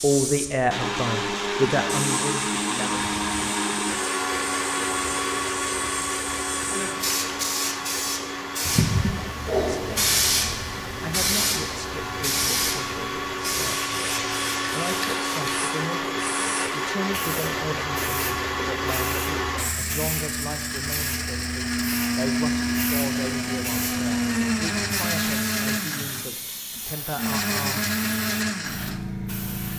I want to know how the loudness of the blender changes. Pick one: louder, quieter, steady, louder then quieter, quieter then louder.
quieter then louder.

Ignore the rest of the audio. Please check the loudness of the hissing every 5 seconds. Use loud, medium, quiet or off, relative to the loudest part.
medium, loud, loud, medium, medium, medium.